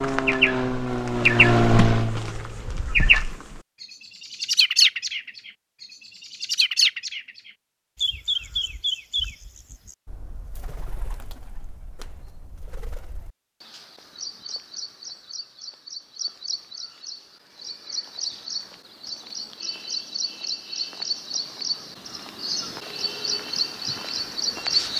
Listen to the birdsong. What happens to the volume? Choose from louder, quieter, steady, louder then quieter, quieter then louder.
quieter then louder.